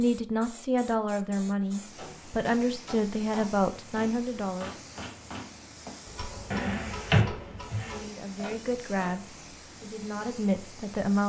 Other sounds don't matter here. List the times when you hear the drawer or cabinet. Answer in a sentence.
You can hear the drawer or cabinet from 6.5 to 8.0 s.